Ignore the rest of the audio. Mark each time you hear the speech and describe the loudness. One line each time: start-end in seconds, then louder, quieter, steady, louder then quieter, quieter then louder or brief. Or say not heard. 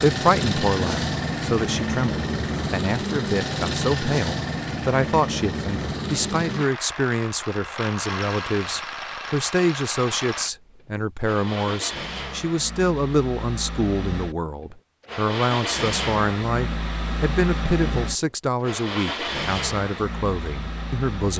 0.0-21.3 steady.